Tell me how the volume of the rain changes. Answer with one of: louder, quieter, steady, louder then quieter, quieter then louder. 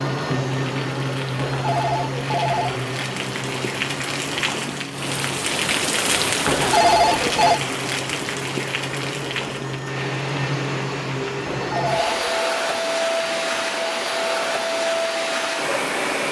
louder then quieter.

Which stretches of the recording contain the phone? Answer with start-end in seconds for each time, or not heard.
1.4-2.9, 6.5-7.6, 11.4-12.5.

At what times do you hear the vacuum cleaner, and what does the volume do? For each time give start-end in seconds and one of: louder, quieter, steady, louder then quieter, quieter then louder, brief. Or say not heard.
0.0-16.2 quieter then louder.